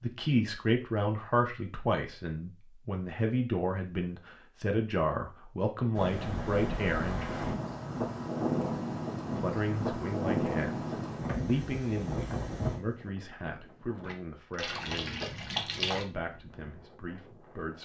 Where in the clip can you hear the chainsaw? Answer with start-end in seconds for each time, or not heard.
not heard.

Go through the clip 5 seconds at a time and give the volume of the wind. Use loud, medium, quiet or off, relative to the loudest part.
off, loud, loud, quiet.